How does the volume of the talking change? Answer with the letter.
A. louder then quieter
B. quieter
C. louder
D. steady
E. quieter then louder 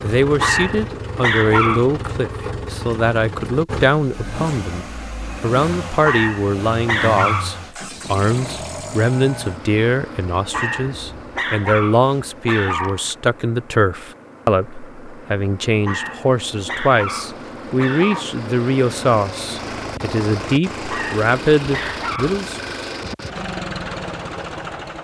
D.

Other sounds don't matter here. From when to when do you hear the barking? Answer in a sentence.
The barking can be heard from 0.4 to 1.9 s, from 6.0 to 7.7 s, from 10.5 to 13.2 s, from 15.8 to 18.2 s and from 20.9 to 22.4 s.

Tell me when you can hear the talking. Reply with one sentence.
The talking can be heard from 0.0 to 22.6 s.